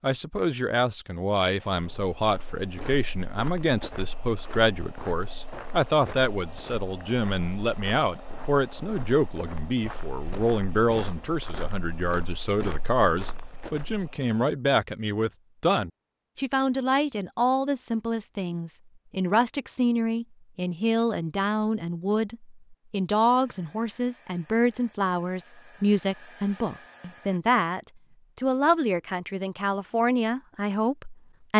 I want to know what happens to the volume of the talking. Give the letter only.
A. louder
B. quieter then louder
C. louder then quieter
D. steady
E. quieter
D.